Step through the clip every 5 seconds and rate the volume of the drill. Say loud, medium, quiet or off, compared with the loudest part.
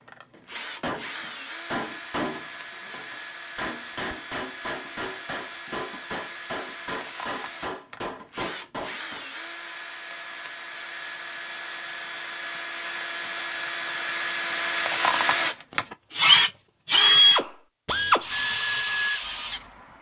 quiet, quiet, medium, loud.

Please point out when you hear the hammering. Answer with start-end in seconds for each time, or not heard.
0.3-9.2.